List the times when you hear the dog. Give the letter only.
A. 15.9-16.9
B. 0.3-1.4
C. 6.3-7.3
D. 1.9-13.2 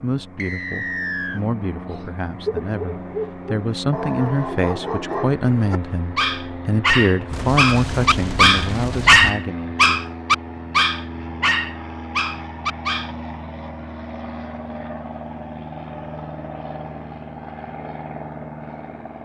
D.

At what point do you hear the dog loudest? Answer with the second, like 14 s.
9 s.